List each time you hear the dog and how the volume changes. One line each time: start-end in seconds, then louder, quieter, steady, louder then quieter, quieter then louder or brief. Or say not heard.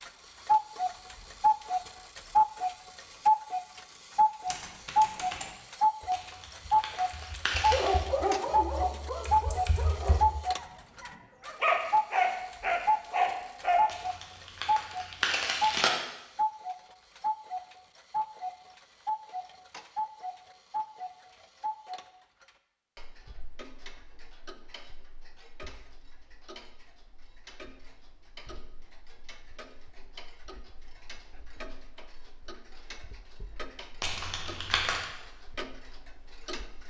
7.7-13.8 quieter then louder.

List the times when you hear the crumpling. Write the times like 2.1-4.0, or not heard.
6.1-8.1, 13.8-15.9, 34.0-35.0.